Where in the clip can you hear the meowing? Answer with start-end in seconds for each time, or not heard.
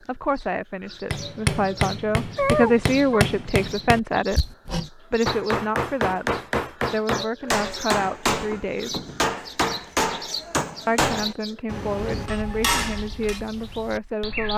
2.4-3.2.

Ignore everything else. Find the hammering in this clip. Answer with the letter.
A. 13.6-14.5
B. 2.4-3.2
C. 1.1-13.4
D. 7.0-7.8
C.